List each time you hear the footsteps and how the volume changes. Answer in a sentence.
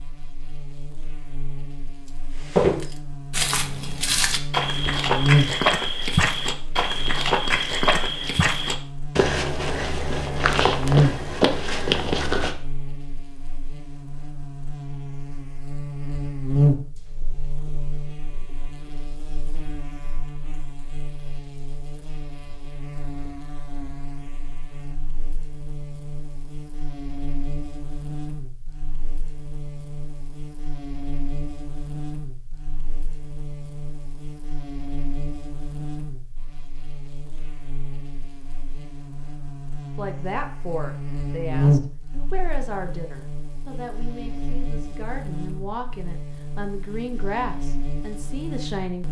The footsteps can be heard from 2.4 to 12.6 s, at a steady volume.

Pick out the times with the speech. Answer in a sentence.
The speech can be heard from 40.0 to 49.0 s.